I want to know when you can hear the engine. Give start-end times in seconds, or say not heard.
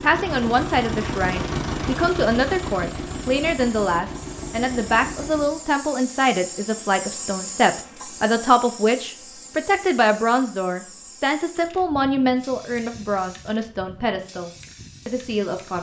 0.0-5.6.